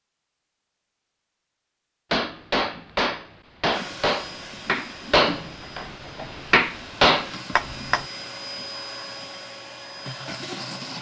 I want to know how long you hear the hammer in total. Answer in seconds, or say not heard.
6 s.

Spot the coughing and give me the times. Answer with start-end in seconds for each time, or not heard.
not heard.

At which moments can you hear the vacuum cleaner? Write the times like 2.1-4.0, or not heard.
3.6-10.9.